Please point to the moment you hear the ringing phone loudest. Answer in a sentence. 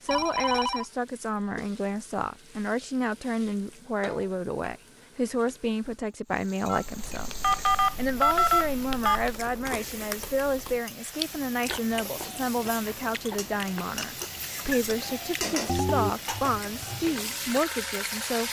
The volume of the ringing phone peaks at 8 seconds.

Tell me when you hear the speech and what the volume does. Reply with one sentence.
The speech can be heard from 0.0 to 18.4 s, at a steady volume.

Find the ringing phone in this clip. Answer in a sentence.
You can hear the ringing phone from 0.1 to 0.8 s, from 6.7 to 9.3 s and from 15.7 to 16.1 s.